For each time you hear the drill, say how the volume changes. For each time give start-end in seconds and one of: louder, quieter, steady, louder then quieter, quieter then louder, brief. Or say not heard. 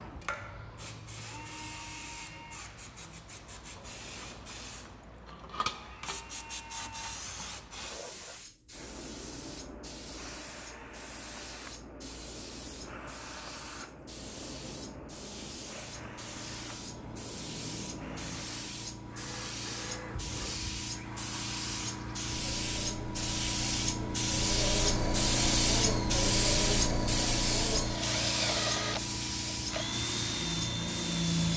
0.0-31.5 louder.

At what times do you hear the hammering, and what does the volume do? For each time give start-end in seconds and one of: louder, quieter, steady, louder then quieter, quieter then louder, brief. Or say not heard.
not heard.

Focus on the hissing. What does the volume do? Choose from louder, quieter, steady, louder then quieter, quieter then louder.
louder.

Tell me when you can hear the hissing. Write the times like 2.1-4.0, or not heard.
0.0-31.5.